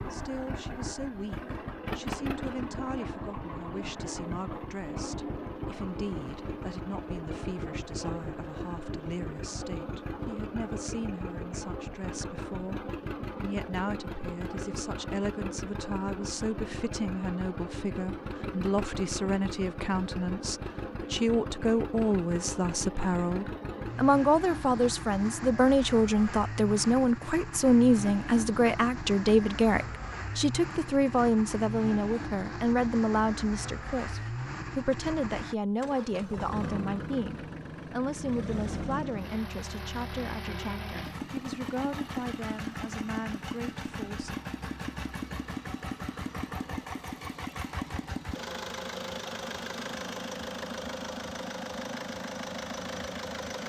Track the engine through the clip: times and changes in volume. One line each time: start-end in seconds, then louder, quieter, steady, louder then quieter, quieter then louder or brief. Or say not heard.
0.0-53.6 steady.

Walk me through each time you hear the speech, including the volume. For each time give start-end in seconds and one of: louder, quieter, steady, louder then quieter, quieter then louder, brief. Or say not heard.
0.0-44.4 louder then quieter.